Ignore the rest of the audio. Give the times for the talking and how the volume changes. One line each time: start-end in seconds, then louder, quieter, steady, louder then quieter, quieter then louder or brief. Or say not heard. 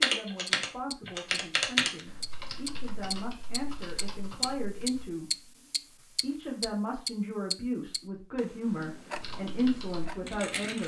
0.0-10.8 louder.